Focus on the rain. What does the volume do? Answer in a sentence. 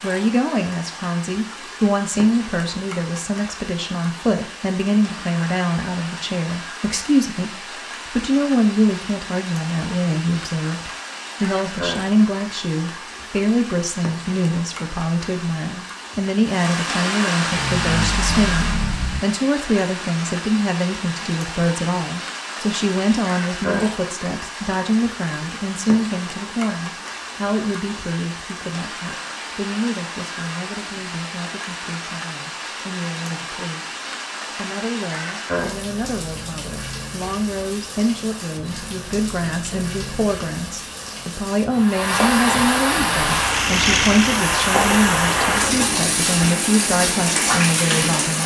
The loudness of the rain goes up.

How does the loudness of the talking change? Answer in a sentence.
The volume of the talking goes down, then up.